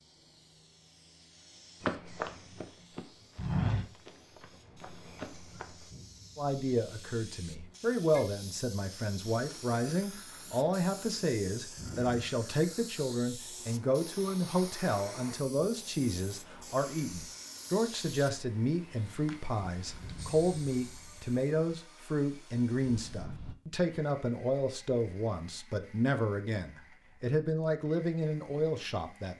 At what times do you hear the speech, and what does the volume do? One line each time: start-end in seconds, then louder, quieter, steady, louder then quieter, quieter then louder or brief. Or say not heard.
6.3-29.3 steady.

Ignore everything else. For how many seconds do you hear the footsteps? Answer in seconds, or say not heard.
4 s.